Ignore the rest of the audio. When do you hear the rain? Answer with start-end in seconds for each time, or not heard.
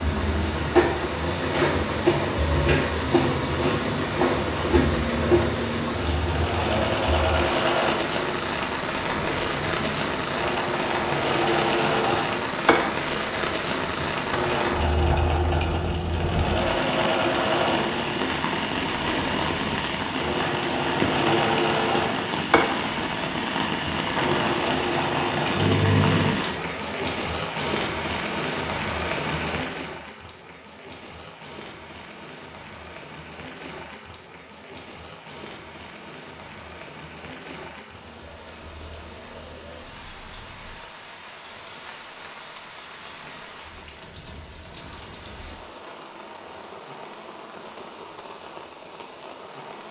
0.0-49.8.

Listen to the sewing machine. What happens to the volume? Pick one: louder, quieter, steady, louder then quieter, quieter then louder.
steady.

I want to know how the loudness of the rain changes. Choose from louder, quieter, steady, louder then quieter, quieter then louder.
quieter.